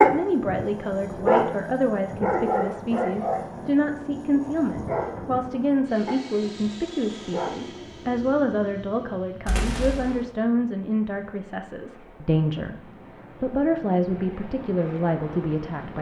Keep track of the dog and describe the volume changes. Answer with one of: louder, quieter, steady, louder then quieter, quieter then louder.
quieter.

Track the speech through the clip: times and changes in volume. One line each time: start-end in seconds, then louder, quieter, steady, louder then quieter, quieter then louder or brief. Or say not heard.
0.0-15.9 steady.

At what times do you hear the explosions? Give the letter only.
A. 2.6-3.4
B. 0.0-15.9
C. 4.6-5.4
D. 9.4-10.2
D.